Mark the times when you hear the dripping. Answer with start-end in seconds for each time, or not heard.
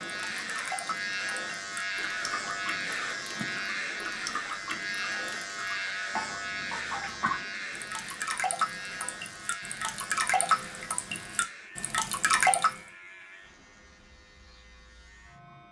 0.0-12.8.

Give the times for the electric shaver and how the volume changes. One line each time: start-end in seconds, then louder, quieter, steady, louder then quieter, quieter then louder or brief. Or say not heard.
0.0-15.6 quieter.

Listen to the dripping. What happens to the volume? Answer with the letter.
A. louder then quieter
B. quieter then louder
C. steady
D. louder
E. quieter
D.